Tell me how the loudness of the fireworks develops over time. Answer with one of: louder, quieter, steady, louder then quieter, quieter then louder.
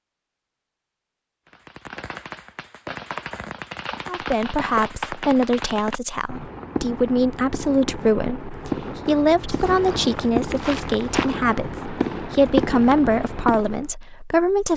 louder.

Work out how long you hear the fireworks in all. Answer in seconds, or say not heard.
12 s.